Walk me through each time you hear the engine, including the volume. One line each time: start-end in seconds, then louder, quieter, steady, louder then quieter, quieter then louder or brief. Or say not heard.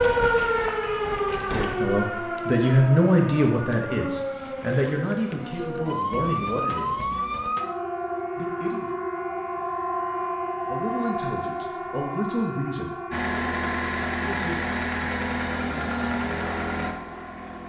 0.0-1.8 brief
13.1-17.6 steady.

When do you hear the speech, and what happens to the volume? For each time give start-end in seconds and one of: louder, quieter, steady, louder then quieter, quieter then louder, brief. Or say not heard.
1.5-7.1 quieter
8.3-8.9 brief
10.7-13.0 brief
14.2-14.7 brief.